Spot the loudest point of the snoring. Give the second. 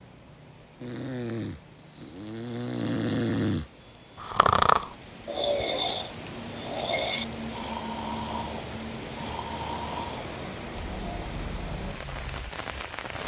5 s.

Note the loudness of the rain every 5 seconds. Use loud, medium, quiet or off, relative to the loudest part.
quiet, loud, loud.